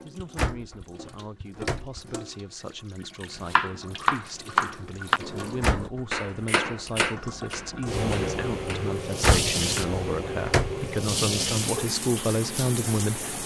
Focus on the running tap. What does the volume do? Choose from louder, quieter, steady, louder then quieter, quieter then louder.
louder.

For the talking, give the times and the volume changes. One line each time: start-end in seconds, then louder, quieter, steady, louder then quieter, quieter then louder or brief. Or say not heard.
0.0-13.3 louder.